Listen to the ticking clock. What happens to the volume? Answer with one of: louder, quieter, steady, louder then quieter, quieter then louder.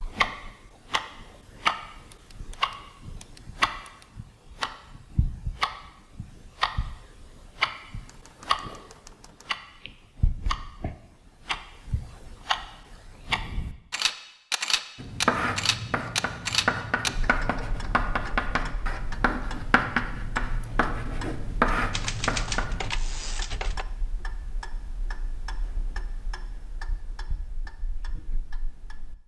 quieter.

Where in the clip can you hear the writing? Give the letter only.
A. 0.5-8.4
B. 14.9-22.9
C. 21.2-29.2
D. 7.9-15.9
B.